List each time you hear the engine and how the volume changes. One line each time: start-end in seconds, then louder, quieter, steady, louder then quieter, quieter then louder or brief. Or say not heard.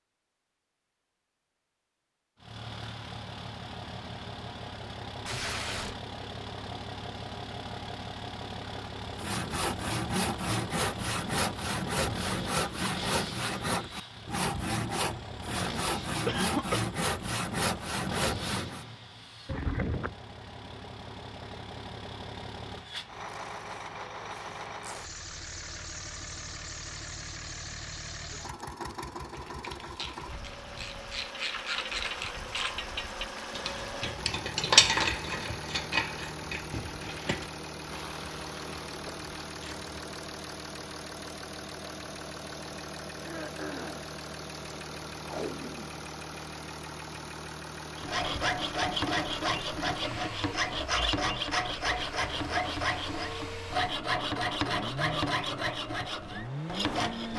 2.4-57.3 steady.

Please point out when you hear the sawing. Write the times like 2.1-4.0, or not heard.
9.1-18.9, 48.0-57.3.